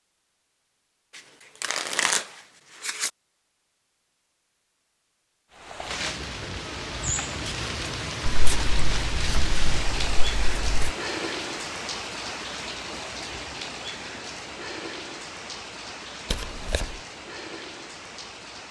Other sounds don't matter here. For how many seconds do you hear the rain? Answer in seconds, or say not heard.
13 s.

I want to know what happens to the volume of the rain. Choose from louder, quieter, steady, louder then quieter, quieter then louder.
quieter.